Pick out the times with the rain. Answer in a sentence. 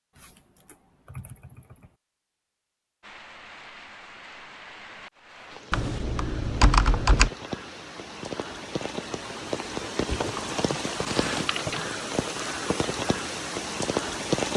The rain can be heard from 3.0 to 14.5 s.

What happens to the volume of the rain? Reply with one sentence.
The loudness of the rain goes up.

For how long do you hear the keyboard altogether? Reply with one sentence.
The keyboard can be heard for 5 seconds in total.